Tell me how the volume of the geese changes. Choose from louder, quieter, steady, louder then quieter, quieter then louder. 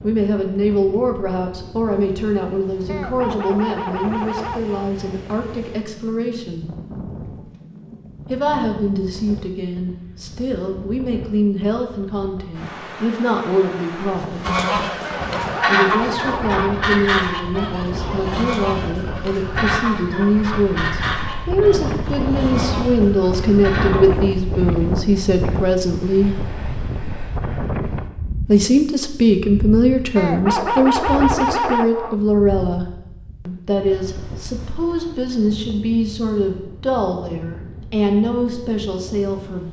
quieter.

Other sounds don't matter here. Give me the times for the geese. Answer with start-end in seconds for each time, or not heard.
14.4-24.1.